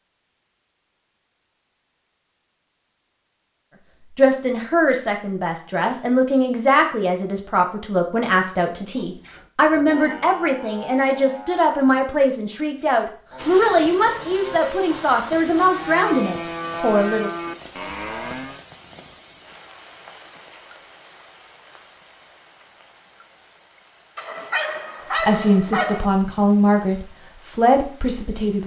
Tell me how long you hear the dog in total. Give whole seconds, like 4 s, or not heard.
2 s.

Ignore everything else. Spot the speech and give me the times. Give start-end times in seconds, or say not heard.
4.2-17.3, 25.1-28.6.